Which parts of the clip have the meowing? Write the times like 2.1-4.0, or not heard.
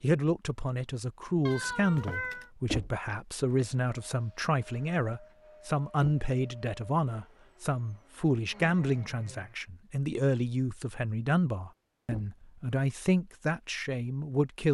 1.4-2.5.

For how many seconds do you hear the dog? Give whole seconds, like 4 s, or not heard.
not heard.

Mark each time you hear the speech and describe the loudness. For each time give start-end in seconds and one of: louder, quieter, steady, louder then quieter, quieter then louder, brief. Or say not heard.
0.0-14.6 steady.